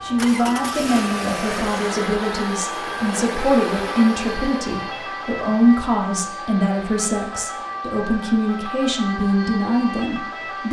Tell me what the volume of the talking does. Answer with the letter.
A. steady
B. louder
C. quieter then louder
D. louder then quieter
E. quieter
A.